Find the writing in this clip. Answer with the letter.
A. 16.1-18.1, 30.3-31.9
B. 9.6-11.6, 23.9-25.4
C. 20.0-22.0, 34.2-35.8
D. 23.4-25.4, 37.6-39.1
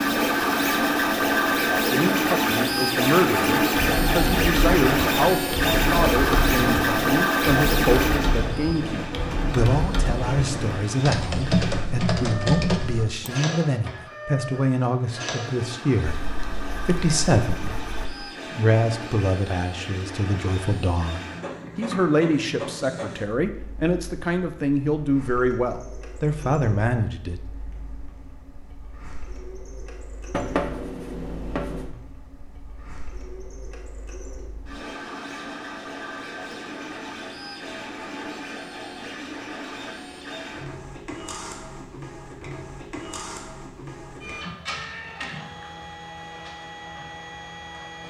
A.